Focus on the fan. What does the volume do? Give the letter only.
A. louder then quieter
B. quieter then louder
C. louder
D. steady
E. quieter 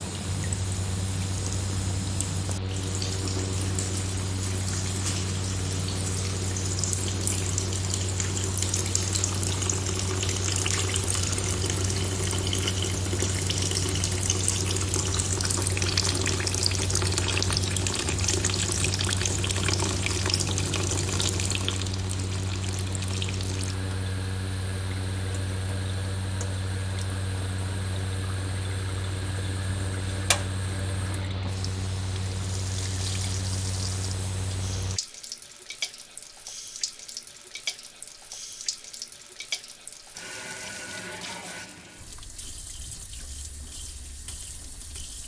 D.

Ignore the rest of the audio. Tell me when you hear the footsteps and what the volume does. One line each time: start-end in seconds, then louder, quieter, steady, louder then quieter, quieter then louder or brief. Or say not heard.
not heard.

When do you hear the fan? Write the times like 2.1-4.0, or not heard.
0.0-35.0.